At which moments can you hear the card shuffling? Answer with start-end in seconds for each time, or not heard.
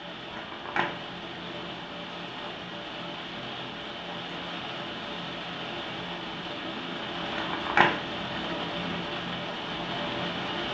0.3-2.0, 7.3-8.9.